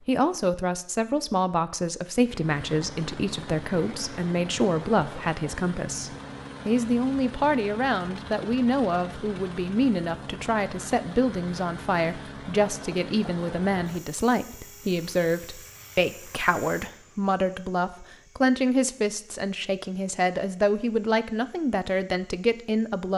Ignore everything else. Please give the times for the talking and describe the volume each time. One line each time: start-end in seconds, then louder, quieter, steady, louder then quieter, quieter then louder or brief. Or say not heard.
0.1-23.1 steady.